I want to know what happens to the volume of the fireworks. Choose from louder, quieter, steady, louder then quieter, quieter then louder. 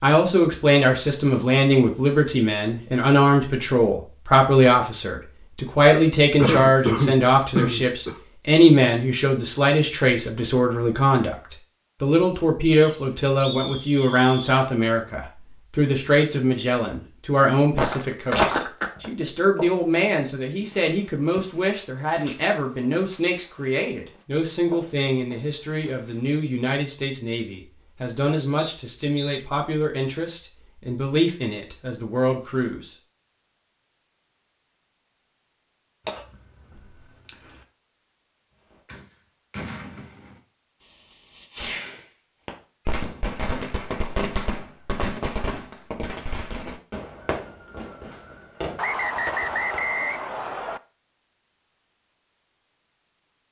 louder then quieter.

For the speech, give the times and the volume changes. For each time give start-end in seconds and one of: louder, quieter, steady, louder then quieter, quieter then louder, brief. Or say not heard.
0.0-33.0 quieter.